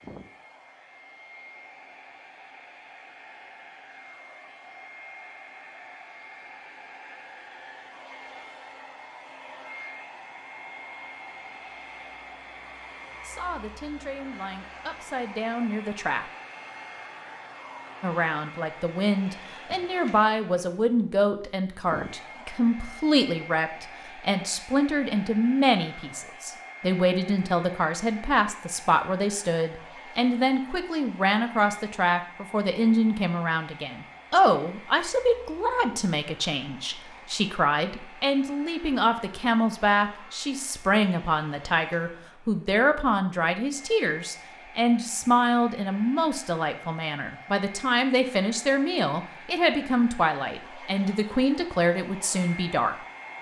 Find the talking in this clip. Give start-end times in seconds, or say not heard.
13.2-16.2, 18.0-53.0.